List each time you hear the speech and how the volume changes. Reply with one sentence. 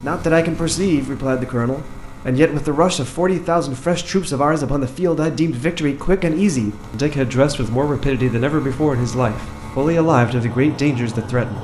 The speech can be heard from 0.0 to 11.5 s, at a steady volume.